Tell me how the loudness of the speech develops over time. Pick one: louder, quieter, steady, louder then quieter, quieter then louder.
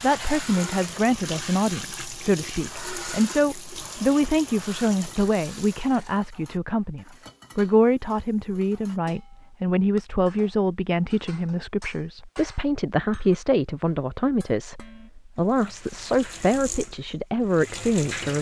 steady.